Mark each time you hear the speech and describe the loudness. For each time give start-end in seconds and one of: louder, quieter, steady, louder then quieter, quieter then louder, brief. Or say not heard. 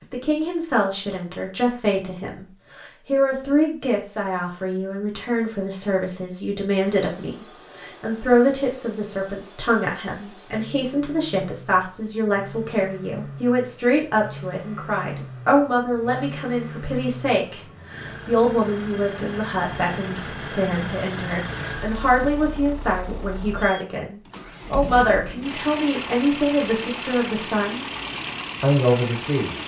0.1-27.9 steady
28.6-29.6 brief.